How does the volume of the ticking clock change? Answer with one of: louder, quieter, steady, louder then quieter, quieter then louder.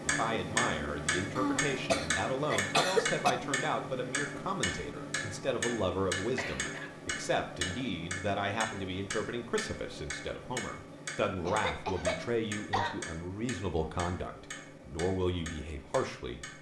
quieter.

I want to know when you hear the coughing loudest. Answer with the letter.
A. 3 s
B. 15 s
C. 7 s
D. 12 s
A.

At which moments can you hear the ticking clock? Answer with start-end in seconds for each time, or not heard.
0.0-16.5.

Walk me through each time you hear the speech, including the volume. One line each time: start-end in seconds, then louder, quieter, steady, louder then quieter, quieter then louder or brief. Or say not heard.
0.0-16.5 steady.